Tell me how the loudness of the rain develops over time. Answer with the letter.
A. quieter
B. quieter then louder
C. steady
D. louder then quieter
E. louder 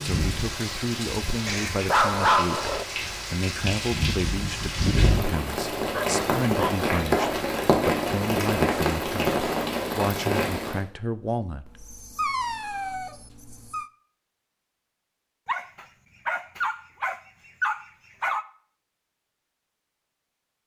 E.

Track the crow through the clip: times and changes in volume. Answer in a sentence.
You can't hear the crow here.